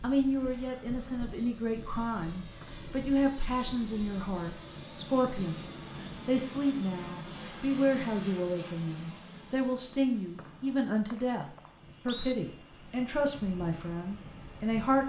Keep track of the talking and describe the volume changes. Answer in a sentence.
The volume of the talking stays about the same.